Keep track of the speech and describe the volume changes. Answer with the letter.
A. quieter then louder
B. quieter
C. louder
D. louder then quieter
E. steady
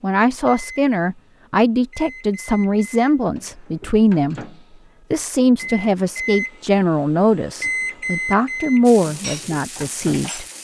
E.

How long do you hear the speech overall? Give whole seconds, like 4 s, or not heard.
10 s.